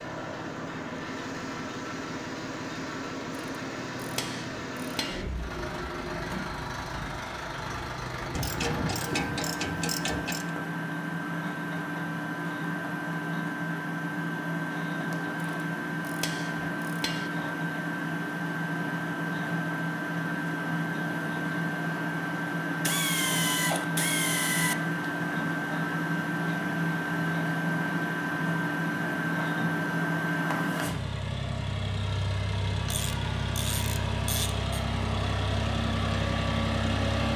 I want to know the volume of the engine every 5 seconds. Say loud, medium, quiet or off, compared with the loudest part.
medium, medium, loud, loud, loud, loud, loud, loud.